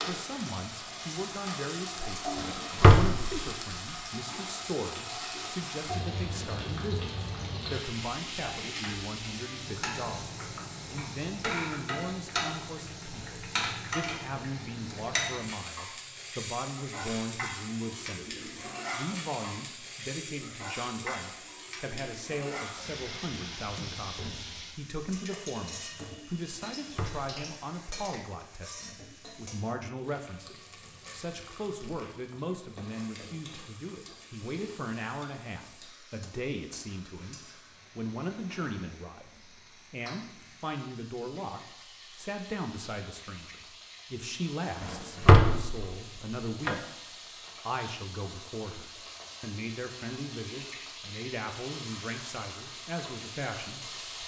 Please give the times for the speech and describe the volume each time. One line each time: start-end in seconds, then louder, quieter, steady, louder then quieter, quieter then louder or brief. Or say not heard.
0.1-54.2 steady.